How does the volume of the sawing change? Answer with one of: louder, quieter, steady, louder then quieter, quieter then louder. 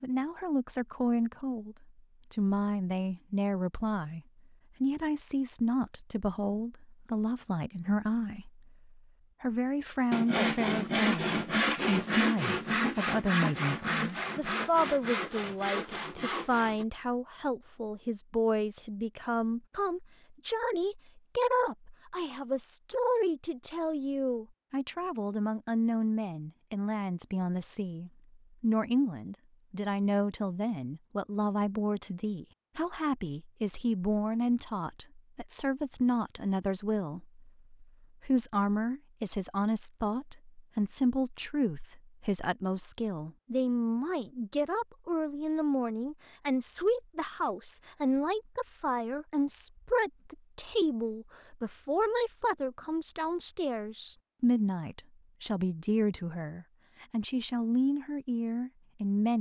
quieter.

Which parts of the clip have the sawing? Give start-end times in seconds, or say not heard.
10.1-16.9.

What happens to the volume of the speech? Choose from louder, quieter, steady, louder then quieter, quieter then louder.
steady.